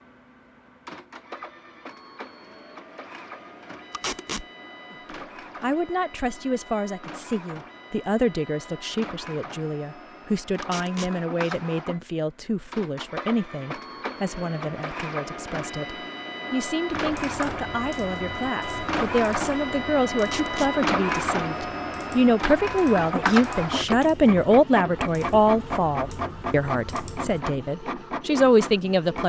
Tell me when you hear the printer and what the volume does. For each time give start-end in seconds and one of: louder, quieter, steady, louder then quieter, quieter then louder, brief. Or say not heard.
0.0-29.2 louder.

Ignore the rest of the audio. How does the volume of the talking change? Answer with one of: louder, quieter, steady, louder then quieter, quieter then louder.
louder.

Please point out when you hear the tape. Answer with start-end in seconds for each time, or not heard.
3.9-4.5, 10.6-11.1, 20.2-20.7.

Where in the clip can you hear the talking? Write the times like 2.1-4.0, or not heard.
4.9-29.2.